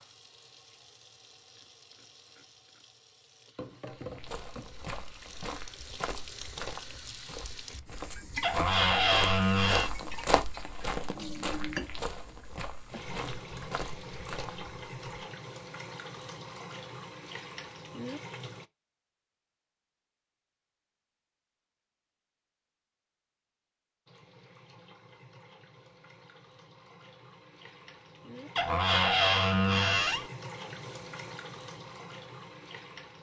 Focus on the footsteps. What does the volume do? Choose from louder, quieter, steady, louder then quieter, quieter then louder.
louder then quieter.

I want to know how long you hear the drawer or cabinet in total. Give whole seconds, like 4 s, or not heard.
3 s.